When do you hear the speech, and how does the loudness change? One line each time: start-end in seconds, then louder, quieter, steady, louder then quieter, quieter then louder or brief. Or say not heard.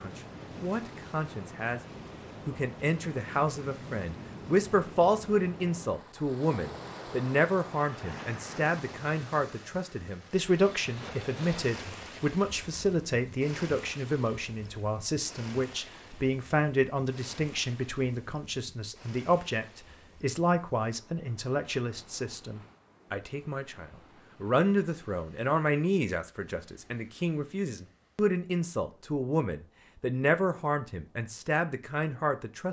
0.0-32.6 steady.